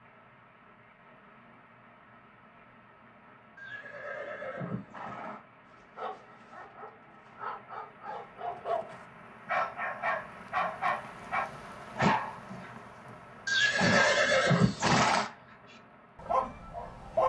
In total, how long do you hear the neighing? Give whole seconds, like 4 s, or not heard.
4 s.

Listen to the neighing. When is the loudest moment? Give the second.
14 s.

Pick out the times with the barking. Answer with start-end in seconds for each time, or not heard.
5.7-12.7, 13.6-17.2.